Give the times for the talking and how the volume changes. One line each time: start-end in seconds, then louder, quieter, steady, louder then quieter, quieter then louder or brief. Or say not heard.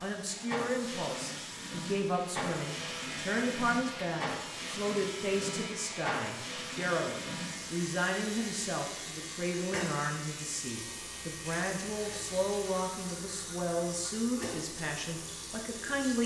0.0-16.2 steady.